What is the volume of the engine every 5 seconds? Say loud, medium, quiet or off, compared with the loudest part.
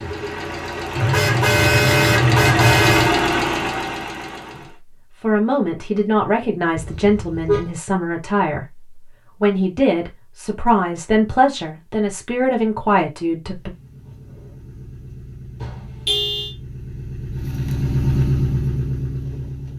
loud, off, quiet, loud.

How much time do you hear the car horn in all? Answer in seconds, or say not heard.
4 s.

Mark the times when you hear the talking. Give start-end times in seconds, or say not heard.
4.5-13.7.